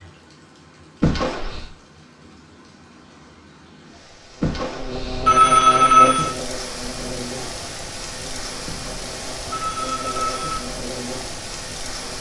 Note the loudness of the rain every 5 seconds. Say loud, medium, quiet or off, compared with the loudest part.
quiet, loud, loud.